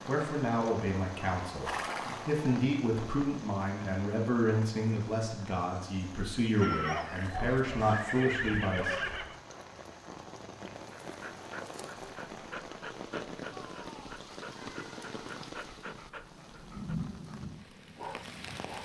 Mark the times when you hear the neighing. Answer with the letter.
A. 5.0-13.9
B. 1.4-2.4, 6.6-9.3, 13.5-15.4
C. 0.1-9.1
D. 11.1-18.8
B.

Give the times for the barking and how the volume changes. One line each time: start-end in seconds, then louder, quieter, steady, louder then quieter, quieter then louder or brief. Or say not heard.
11.1-18.8 steady.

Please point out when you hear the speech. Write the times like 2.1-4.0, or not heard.
0.1-9.1.